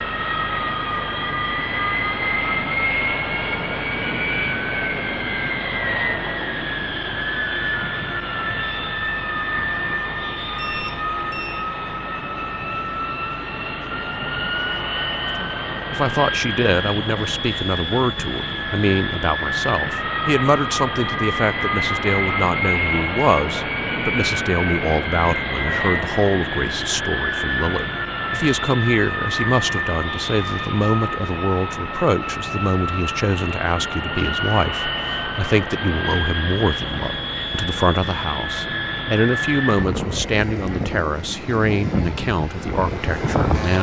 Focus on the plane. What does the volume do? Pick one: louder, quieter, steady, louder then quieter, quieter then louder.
steady.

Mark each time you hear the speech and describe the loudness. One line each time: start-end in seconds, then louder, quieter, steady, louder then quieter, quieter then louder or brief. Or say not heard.
15.3-43.7 steady.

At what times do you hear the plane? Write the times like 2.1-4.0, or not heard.
0.0-43.7.